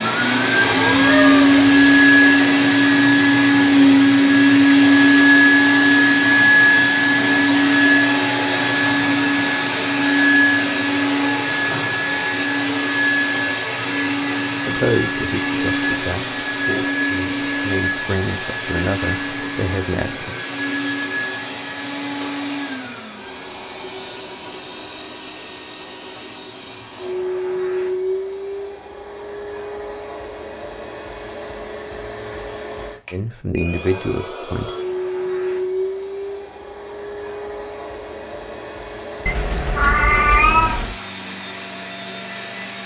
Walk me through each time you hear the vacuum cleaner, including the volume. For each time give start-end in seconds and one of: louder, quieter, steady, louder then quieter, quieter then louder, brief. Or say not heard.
0.0-42.8 quieter.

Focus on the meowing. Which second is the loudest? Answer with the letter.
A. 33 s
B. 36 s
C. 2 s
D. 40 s
D.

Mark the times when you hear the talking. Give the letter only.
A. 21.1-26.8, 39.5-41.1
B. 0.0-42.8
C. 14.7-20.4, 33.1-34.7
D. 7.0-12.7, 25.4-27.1
C.